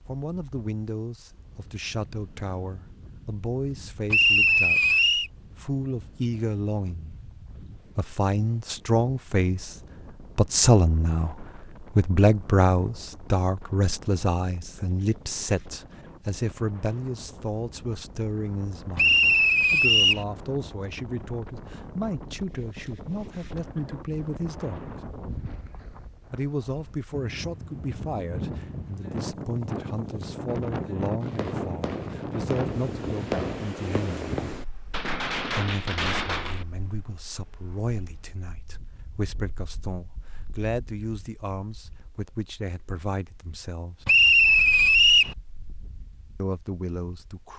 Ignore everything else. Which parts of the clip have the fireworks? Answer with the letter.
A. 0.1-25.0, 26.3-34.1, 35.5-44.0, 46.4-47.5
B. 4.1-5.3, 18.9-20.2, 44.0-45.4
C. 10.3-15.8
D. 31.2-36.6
D.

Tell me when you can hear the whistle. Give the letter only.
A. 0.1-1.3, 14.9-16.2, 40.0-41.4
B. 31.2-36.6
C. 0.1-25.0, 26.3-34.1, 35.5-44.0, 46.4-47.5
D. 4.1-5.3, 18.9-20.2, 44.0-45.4
D.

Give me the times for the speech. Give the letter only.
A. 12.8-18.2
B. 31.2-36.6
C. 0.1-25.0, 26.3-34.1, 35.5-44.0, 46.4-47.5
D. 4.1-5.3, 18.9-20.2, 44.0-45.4
C.